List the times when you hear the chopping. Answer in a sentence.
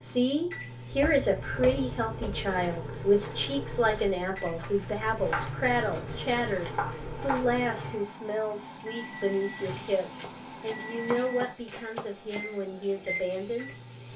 The chopping can be heard from 0.9 to 2.5 s, from 5.2 to 7.8 s and from 10.2 to 12.4 s.